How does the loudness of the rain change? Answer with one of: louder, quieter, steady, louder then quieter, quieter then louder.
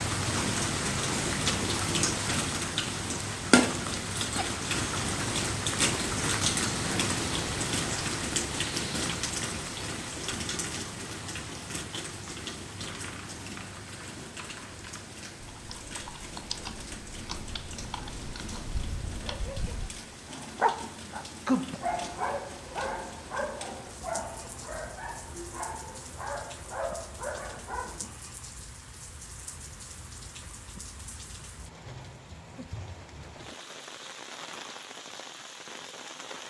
quieter.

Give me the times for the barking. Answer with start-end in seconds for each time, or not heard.
18.7-28.0.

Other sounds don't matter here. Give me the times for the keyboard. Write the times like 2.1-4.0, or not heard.
12.8-19.4.